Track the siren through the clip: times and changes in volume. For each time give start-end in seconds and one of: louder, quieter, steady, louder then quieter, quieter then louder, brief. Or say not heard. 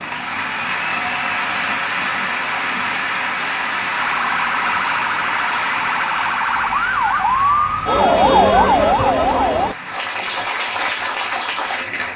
4.0-9.8 louder.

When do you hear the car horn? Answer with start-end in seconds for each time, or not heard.
not heard.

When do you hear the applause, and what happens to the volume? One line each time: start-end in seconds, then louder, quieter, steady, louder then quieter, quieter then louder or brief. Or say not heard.
0.0-12.1 quieter then louder.